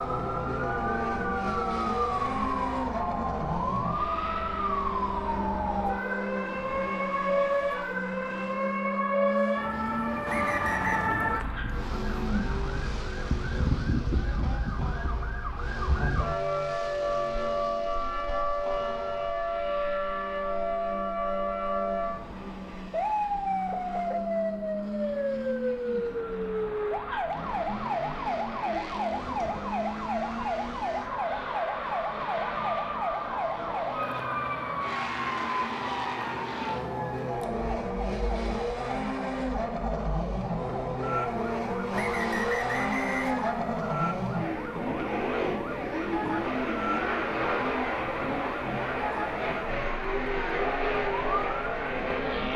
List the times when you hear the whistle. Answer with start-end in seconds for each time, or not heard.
10.2-11.1, 41.9-43.4.